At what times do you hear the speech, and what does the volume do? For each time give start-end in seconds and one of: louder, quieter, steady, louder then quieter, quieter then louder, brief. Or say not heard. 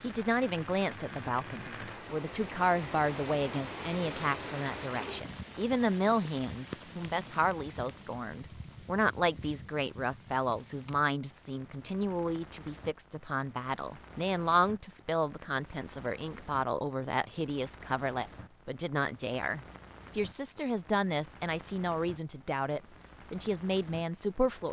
0.0-24.6 steady.